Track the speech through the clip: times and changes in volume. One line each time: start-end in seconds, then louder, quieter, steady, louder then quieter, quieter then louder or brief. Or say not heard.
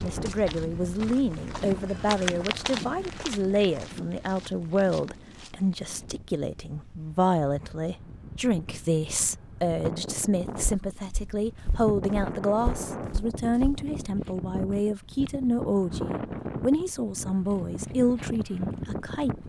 0.0-19.4 steady.